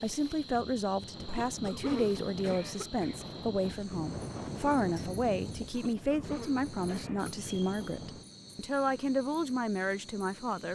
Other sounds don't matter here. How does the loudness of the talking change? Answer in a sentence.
The volume of the talking stays about the same.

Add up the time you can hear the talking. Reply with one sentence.
The talking can be heard for 11 seconds in total.